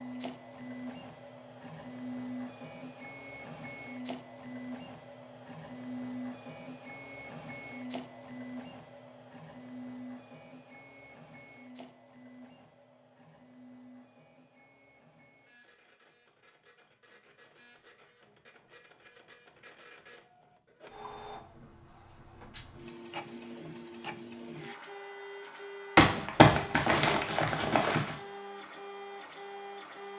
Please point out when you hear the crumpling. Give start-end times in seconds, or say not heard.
25.9-28.1.